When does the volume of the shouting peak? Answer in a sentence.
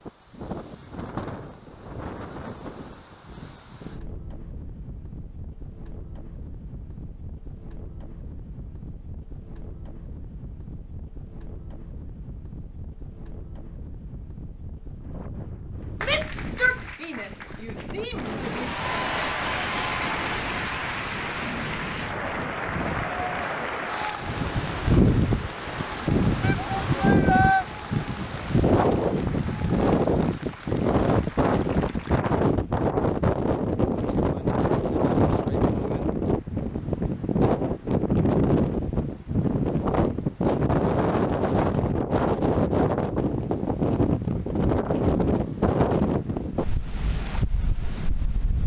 The volume of the shouting peaks at 27 seconds.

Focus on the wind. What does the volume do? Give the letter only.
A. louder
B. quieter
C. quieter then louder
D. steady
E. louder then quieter
A.